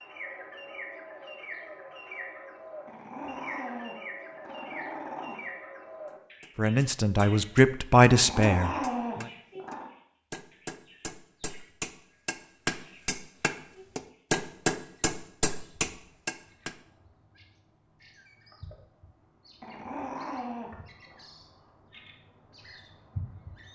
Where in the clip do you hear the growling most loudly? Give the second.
9 s.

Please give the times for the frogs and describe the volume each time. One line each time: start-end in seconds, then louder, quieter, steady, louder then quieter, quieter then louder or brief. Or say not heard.
not heard.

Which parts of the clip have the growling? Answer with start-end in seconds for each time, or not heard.
2.9-5.3, 8.1-9.9, 19.6-21.2.